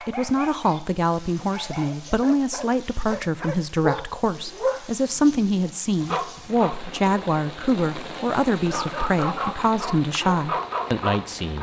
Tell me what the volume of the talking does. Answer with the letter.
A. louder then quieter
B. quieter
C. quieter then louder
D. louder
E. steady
E.